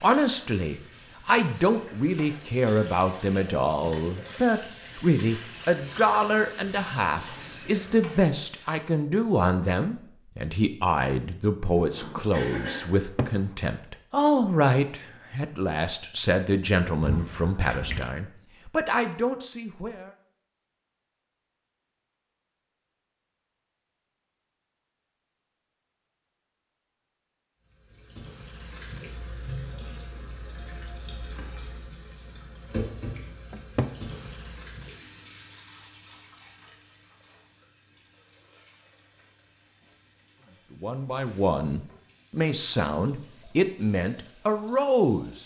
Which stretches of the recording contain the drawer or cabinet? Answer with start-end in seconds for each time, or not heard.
12.9-13.3, 17.0-18.1, 33.5-34.0.